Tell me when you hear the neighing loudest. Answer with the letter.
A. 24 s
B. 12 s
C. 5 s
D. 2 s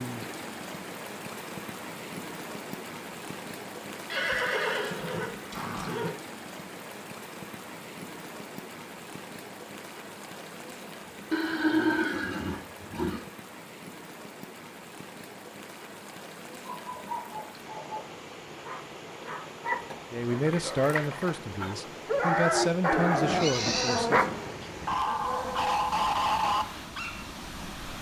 B.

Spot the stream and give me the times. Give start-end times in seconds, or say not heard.
0.0-27.9.